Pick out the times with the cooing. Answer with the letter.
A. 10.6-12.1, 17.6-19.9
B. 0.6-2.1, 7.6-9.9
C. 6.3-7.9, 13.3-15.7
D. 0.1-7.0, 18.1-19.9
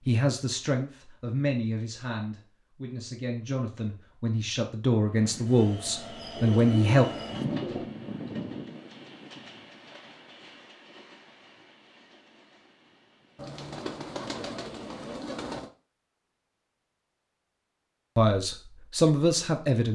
C.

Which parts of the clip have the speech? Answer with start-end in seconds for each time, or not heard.
0.1-7.0, 18.1-19.9.